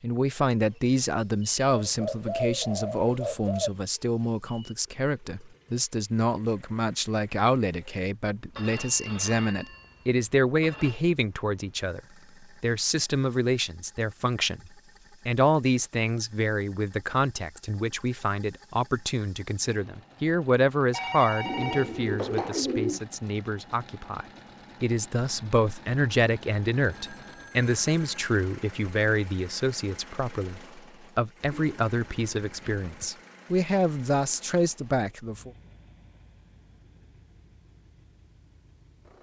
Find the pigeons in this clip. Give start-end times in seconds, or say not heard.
1.6-3.7, 21.4-23.1, 31.5-33.1.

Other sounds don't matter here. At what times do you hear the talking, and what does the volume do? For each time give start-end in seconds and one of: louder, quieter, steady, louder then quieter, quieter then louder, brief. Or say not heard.
0.0-35.5 steady.